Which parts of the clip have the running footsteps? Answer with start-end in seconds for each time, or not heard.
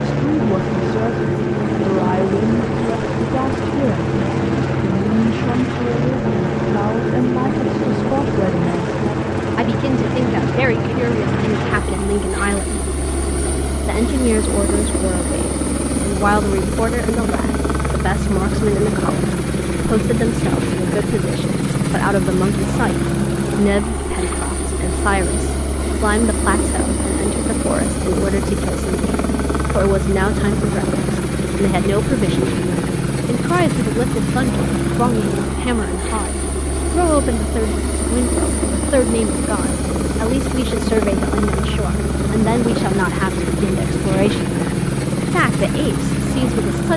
not heard.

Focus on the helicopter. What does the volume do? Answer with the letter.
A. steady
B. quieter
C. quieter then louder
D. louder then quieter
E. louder
A.